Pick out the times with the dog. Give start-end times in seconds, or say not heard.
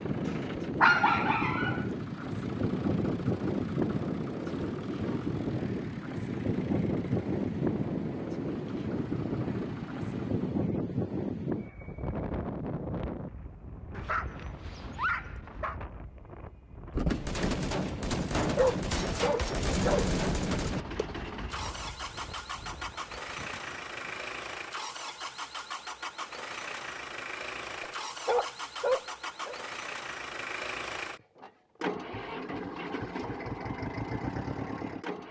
0.8-1.8, 13.9-15.8, 18.6-20.1, 27.8-29.6.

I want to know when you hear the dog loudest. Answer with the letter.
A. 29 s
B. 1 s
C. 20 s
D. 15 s
B.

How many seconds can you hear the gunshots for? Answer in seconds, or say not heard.
4 s.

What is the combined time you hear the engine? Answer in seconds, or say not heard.
25 s.